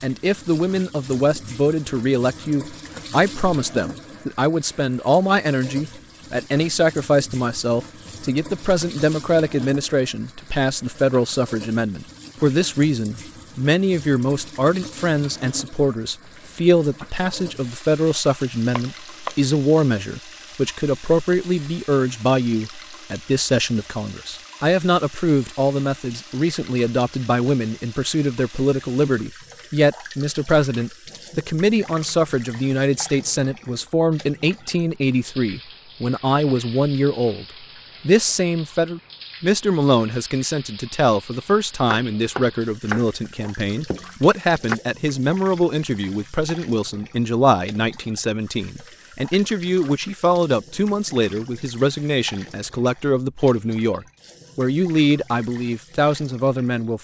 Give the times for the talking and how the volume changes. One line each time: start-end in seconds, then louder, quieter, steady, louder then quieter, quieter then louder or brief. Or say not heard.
0.0-37.5 steady
38.0-56.9 steady.